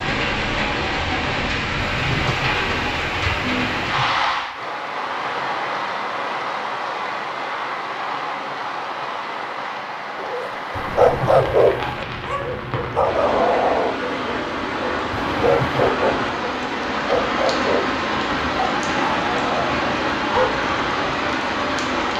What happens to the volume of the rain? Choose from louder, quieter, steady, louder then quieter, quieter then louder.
quieter then louder.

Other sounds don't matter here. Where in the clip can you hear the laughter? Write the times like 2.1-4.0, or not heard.
1.8-4.0, 10.7-12.0, 15.1-15.9.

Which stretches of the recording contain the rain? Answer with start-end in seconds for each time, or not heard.
0.0-22.1.